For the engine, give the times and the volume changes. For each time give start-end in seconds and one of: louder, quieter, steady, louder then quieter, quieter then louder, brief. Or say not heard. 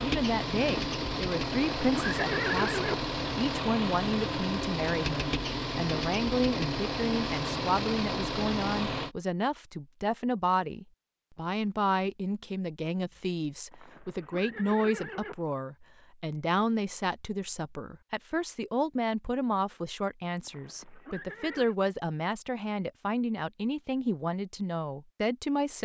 0.0-9.2 steady.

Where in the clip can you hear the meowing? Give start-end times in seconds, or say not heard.
not heard.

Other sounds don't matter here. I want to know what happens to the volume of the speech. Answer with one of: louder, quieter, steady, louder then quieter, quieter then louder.
steady.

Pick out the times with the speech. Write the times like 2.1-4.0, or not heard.
0.0-25.8.